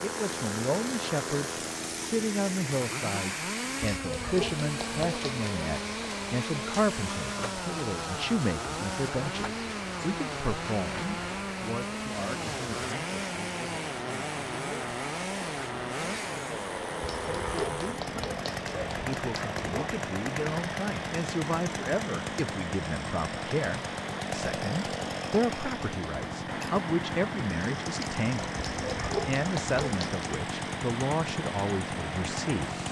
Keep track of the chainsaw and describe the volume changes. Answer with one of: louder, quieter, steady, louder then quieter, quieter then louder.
steady.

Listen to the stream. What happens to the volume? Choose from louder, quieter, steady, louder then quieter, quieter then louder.
steady.